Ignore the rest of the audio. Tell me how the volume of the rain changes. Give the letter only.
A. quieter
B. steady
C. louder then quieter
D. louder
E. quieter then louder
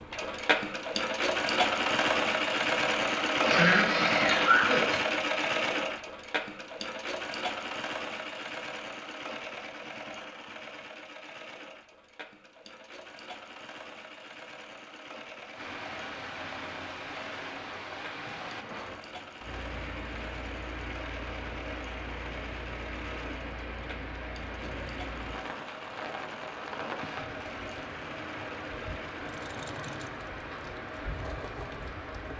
B.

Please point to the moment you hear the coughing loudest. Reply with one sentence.
The volume of the coughing peaks at 4 seconds.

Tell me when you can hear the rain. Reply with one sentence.
The rain can be heard from 15.5 to 32.3 s.